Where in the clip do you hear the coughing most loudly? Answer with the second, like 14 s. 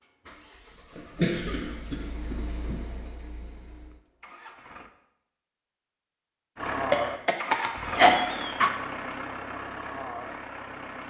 8 s.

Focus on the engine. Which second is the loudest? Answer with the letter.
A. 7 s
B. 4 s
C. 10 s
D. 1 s
A.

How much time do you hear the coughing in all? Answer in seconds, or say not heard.
4 s.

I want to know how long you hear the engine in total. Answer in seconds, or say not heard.
9 s.